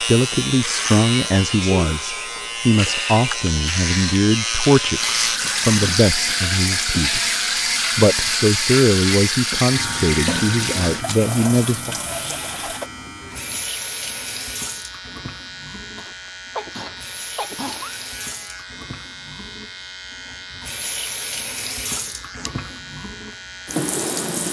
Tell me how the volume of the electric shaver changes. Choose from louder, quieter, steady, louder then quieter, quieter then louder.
quieter.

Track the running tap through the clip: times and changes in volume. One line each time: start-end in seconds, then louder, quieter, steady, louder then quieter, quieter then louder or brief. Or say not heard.
4.9-24.4 quieter then louder.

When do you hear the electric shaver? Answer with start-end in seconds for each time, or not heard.
0.0-24.4.